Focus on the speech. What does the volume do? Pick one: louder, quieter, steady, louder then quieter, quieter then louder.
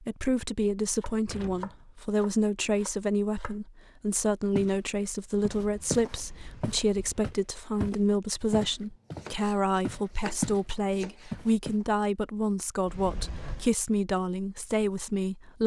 steady.